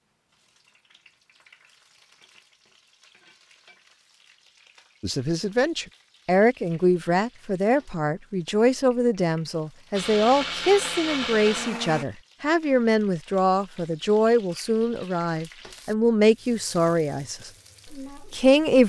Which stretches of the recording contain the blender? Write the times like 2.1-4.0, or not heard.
9.9-12.1.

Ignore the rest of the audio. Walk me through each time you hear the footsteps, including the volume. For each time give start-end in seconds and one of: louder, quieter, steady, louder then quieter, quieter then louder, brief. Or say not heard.
not heard.